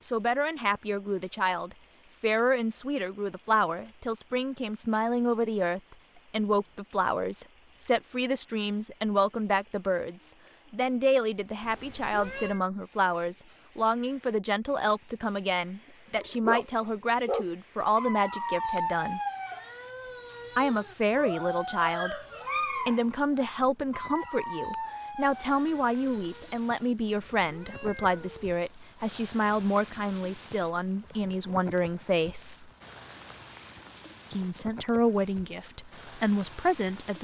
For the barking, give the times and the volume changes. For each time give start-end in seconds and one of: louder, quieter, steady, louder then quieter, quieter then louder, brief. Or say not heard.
16.1-26.6 quieter.